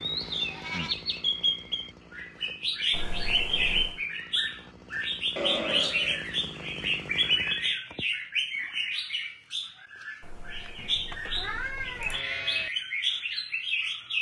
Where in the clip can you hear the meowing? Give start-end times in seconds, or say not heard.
2.9-4.0, 10.2-12.2.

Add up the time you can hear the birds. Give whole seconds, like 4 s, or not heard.
14 s.